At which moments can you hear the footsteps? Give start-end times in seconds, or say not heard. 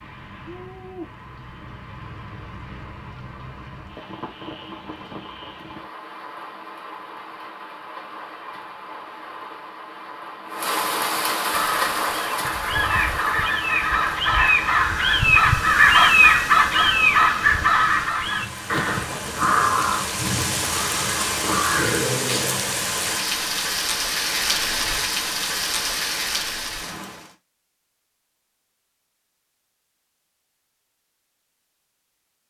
not heard.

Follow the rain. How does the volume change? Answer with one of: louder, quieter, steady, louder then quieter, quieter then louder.
louder.